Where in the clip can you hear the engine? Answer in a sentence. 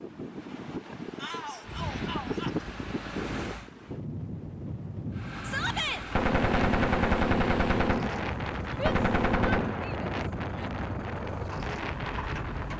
The engine can be heard from 1.6 to 3.7 s and from 5.1 to 12.7 s.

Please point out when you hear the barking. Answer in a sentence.
You can't hear the barking here.